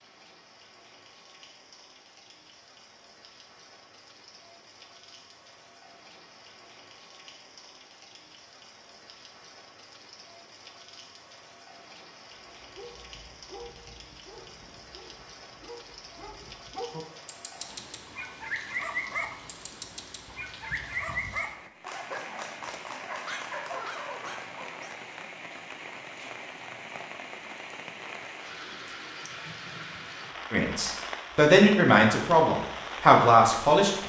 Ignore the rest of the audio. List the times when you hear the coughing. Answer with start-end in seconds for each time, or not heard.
not heard.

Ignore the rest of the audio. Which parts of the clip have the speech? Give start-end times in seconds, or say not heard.
30.5-34.0.